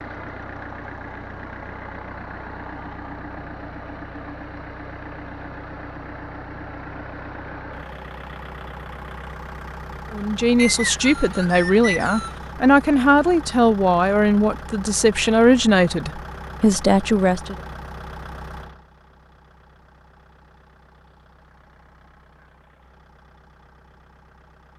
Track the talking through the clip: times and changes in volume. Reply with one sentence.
The talking can be heard from 10.1 to 17.6 s, at a steady volume.